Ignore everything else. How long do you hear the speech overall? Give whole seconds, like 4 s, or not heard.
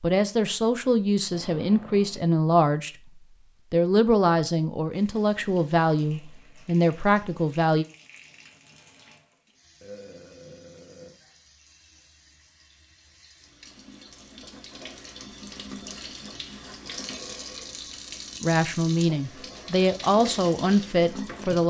11 s.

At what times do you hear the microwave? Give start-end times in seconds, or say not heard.
not heard.